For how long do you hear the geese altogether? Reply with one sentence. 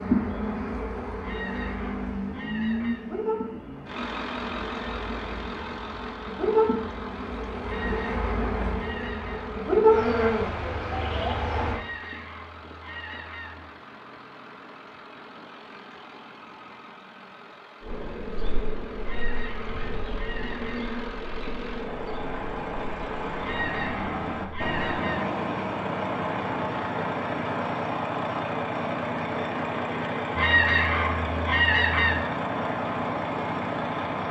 The geese can be heard for 11 seconds in total.